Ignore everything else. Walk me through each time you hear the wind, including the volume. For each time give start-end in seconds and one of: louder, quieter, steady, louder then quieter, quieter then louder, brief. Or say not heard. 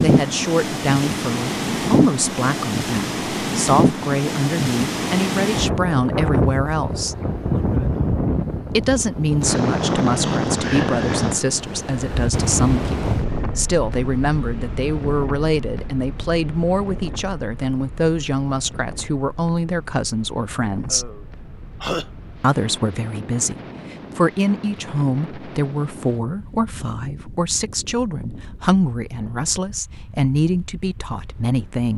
0.0-31.9 quieter.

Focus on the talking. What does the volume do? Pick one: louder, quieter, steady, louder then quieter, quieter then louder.
steady.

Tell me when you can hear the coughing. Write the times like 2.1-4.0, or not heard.
20.9-22.1.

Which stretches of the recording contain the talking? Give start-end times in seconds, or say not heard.
0.0-7.2, 8.7-21.1, 22.4-31.9.